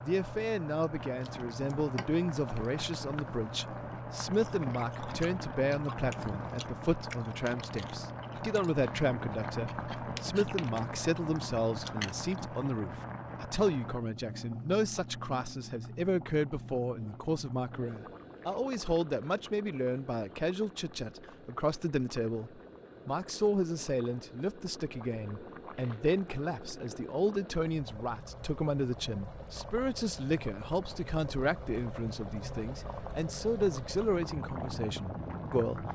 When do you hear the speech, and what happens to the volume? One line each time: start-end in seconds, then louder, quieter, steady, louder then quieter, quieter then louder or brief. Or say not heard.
0.0-35.9 steady.